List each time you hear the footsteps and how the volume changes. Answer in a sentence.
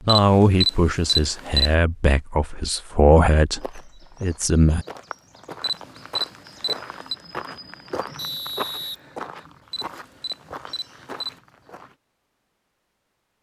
You can hear the footsteps from 3.6 to 11.9 s, getting louder then quieter.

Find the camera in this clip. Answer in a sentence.
The camera can be heard from 0.1 to 1.8 s, from 5.6 to 7.2 s and from 9.7 to 11.3 s.